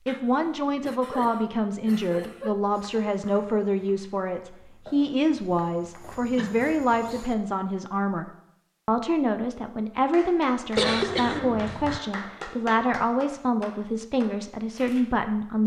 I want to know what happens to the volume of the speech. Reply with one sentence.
The loudness of the speech stays about the same.